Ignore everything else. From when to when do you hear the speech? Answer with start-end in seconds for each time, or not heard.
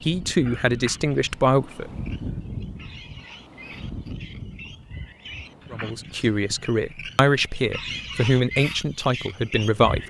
0.0-1.9, 5.7-10.0.